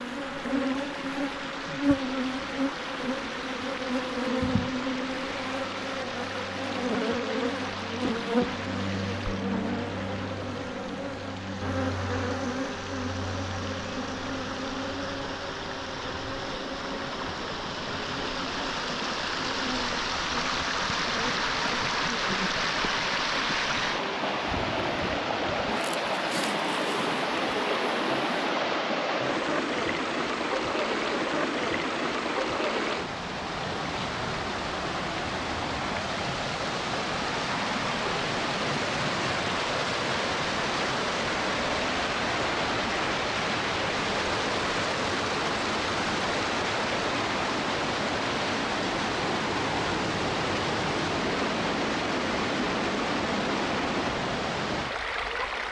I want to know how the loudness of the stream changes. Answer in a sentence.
The volume of the stream goes up.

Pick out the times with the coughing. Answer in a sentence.
You can't hear the coughing here.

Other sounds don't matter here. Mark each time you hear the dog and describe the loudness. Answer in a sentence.
The dog can't be heard in this clip.